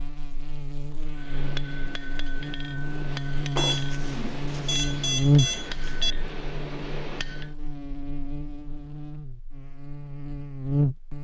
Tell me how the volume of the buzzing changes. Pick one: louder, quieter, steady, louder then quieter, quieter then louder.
louder then quieter.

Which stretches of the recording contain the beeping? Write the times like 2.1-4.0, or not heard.
3.5-6.2.